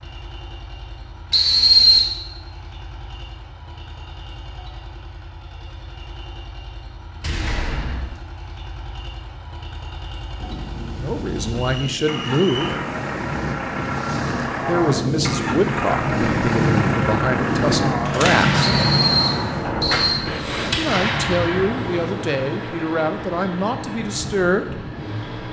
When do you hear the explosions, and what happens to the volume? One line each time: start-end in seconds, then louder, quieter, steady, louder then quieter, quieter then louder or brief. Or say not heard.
7.2-8.2 brief
18.1-22.1 quieter then louder.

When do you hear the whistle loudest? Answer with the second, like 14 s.
2 s.